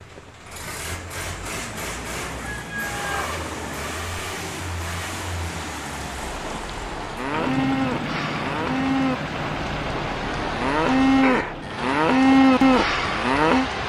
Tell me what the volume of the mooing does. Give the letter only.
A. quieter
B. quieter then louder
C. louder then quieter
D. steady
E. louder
E.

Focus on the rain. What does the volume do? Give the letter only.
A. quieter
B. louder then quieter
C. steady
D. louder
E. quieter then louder
D.